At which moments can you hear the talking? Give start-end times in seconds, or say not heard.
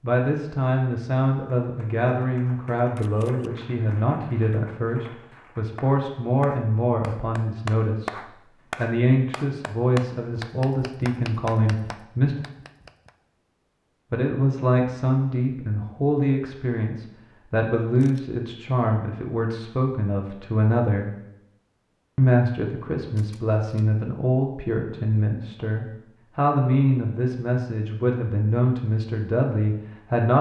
0.0-12.3, 14.1-21.1, 22.1-30.3.